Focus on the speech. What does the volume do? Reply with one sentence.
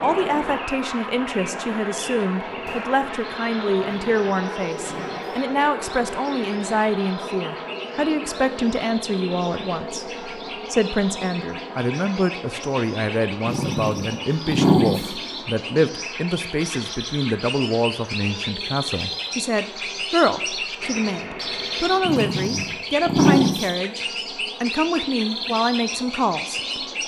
The loudness of the speech stays about the same.